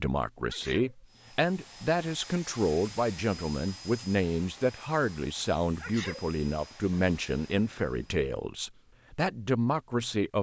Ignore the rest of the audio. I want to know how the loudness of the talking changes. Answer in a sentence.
The loudness of the talking stays about the same.